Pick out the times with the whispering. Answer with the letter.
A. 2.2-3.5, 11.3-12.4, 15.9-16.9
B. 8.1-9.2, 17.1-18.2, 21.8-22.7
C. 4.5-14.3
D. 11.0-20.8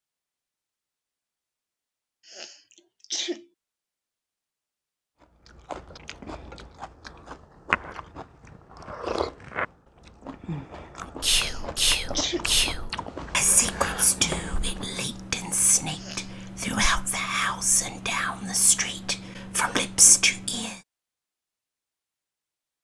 D.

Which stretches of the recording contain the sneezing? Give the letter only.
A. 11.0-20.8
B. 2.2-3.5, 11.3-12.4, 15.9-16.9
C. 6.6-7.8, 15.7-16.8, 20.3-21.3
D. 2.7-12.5
B.